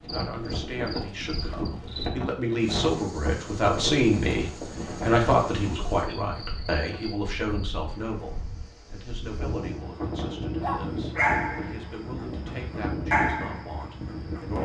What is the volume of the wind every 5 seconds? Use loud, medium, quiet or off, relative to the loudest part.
loud, medium, loud.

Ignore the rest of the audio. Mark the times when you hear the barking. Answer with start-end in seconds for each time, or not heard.
10.6-14.6.